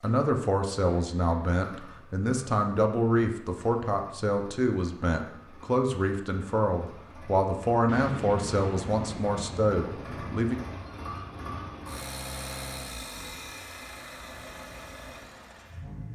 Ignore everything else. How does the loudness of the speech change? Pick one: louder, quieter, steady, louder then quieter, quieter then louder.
steady.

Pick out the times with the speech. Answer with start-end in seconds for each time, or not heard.
0.0-10.6.